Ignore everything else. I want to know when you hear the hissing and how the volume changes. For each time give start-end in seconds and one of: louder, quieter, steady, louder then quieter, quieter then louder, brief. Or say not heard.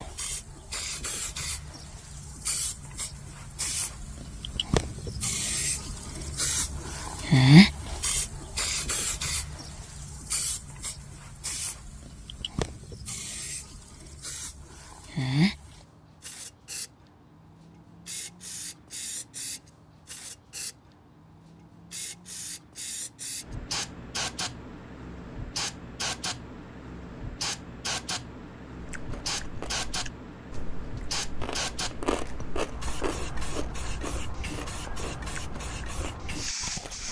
0.0-37.0 quieter.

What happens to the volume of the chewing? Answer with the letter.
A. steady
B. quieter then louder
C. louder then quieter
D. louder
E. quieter
C.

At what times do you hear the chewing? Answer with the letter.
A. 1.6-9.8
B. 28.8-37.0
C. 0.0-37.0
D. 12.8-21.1
B.